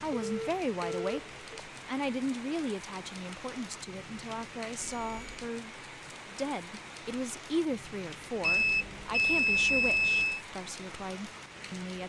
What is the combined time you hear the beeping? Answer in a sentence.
You can hear the beeping for 4 seconds altogether.